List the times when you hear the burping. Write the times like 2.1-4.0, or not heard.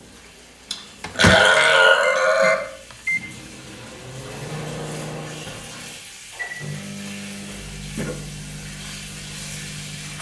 0.7-2.6, 6.7-8.2.